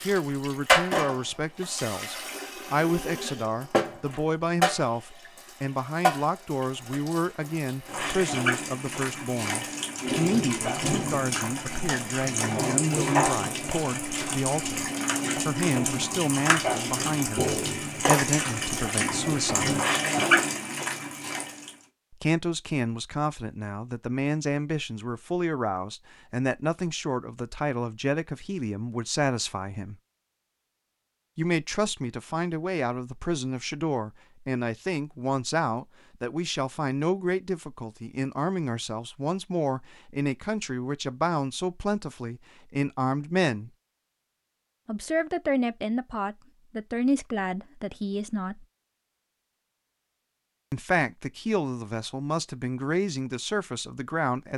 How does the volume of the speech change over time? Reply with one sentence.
The loudness of the speech stays about the same.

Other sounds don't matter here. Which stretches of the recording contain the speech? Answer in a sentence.
You can hear the speech from 0.0 to 19.7 s, from 22.1 to 29.9 s, from 31.4 to 43.7 s, from 44.9 to 48.6 s and from 50.7 to 54.5 s.